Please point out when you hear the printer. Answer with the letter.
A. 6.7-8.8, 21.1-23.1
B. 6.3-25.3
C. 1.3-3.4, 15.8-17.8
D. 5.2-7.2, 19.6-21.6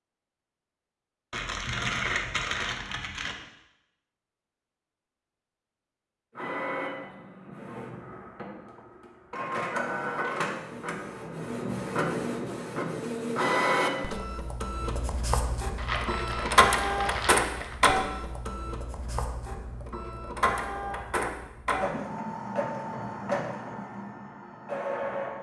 B.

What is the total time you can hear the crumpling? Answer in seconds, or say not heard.
4 s.